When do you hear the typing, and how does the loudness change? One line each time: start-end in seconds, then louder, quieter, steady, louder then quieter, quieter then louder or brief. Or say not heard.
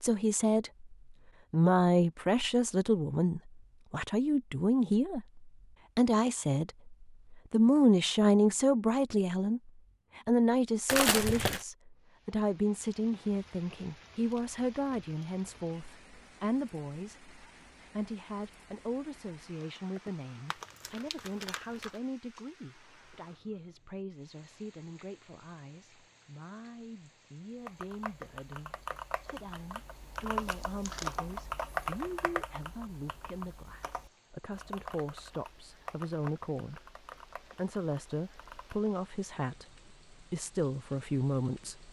27.6-39.0 louder then quieter.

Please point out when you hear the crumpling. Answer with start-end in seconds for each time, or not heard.
10.8-11.7, 20.5-22.0, 30.4-31.2.